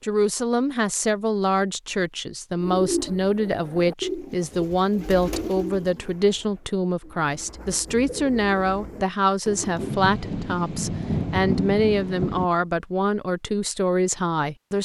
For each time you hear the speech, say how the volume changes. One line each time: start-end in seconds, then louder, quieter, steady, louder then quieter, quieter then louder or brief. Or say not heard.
0.0-14.7 steady.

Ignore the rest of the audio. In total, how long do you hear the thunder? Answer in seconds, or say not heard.
3 s.